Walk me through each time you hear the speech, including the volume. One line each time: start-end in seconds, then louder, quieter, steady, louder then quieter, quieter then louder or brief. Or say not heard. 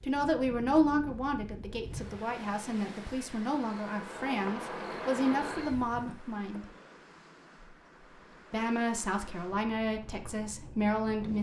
0.0-6.7 quieter then louder
8.5-11.3 brief.